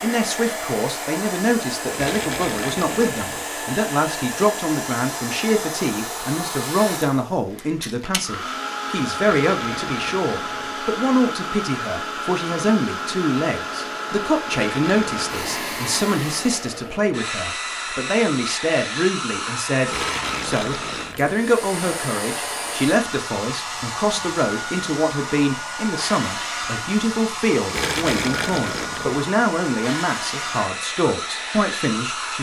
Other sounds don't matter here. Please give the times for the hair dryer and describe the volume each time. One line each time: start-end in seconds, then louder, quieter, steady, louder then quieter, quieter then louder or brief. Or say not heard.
0.0-32.3 steady.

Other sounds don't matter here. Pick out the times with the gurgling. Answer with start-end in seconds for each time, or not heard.
1.9-3.5, 9.3-10.8, 14.6-15.8, 19.9-21.4, 27.6-29.2.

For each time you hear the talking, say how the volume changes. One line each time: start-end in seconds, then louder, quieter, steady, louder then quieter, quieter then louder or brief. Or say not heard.
0.0-32.3 steady.